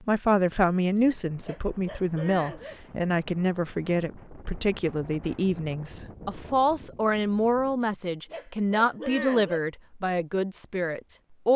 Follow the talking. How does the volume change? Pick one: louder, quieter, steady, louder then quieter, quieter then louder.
steady.